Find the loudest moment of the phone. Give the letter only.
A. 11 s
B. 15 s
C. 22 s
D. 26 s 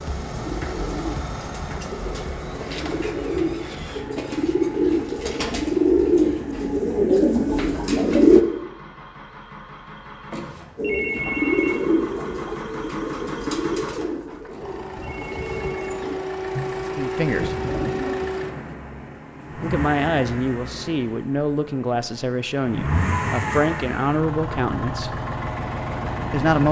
A.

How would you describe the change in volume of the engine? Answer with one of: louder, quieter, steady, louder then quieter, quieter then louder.
quieter then louder.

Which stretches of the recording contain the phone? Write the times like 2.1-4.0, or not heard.
10.3-11.8, 14.4-15.9.